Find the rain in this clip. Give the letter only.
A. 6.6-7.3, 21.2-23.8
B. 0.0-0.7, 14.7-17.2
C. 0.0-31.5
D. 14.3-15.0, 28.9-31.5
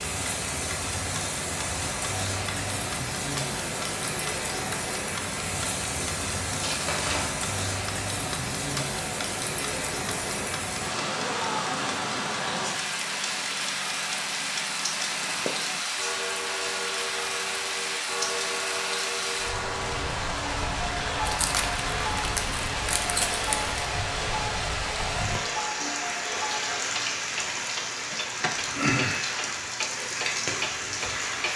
C.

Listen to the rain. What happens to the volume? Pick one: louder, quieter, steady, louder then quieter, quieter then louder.
steady.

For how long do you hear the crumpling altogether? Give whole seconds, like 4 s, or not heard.
3 s.